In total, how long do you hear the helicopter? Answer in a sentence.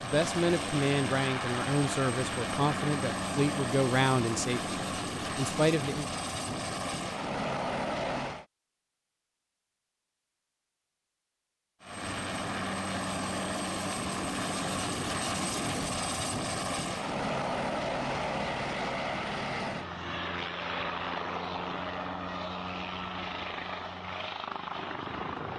The helicopter can be heard for 22 seconds in total.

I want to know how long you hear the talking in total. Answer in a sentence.
The talking can be heard for 6 seconds in total.